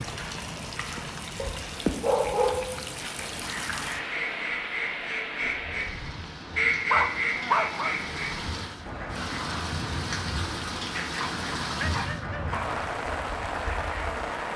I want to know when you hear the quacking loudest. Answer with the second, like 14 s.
7 s.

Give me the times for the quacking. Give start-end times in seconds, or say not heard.
3.2-14.2.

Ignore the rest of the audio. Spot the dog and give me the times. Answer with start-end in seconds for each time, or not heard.
1.4-2.9, 6.2-8.0, 10.9-12.7.